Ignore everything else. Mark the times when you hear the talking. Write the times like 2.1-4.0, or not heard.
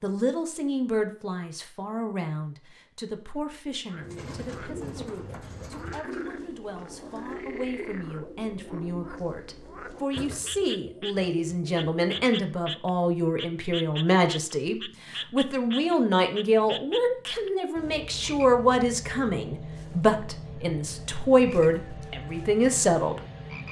0.0-23.2.